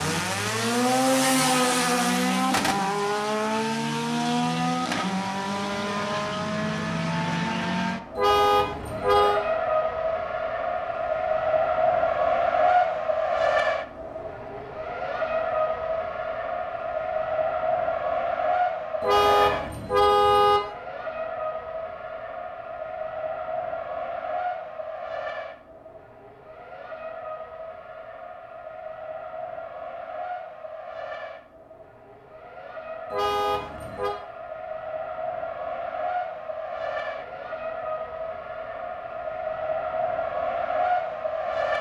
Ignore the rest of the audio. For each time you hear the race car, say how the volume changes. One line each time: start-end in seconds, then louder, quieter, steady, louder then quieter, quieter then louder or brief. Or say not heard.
0.0-41.7 quieter then louder.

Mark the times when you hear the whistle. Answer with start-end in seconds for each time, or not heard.
not heard.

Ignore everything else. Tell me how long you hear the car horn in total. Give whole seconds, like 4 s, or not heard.
4 s.